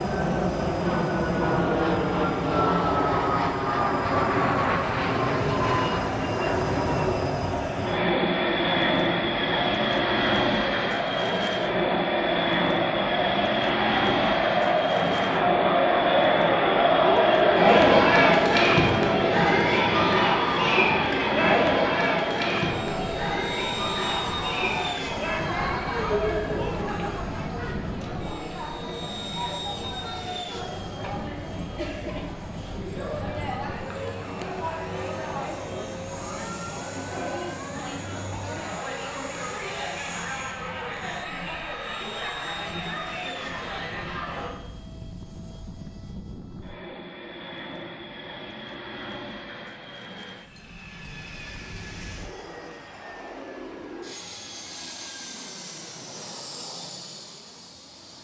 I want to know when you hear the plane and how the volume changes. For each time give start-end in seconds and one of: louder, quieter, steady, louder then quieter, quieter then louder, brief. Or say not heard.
0.0-58.1 quieter.